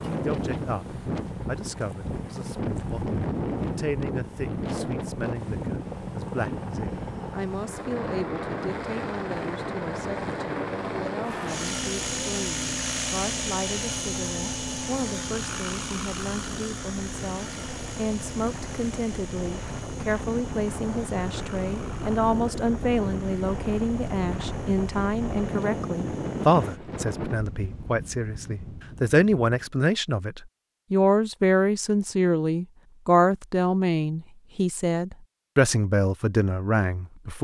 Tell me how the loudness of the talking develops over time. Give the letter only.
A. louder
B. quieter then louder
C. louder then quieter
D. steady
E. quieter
A.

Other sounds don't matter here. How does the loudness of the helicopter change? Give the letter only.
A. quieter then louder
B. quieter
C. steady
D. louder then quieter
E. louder
D.